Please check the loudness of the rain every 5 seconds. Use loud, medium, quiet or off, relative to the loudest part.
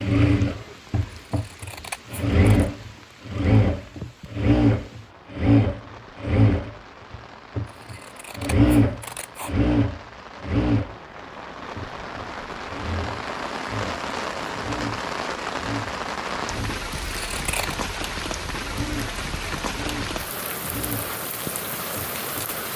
quiet, quiet, loud, loud, loud.